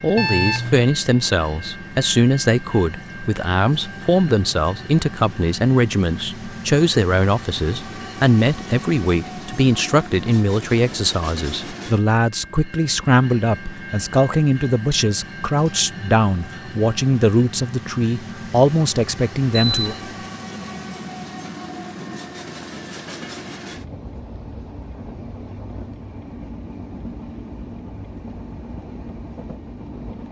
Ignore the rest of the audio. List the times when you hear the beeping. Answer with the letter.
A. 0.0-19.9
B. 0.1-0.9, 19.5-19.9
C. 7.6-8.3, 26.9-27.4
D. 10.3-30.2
B.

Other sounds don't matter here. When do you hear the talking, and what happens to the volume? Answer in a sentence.
The talking can be heard from 0.0 to 19.9 s, at a steady volume.